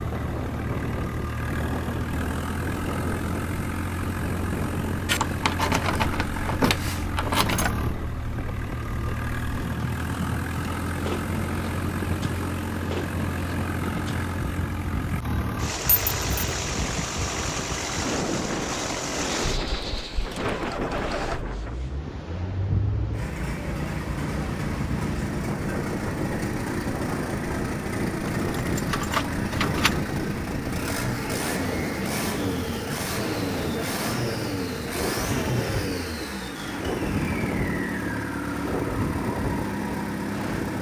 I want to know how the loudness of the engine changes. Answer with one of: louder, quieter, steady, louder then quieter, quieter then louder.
steady.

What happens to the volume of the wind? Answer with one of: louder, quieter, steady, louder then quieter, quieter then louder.
steady.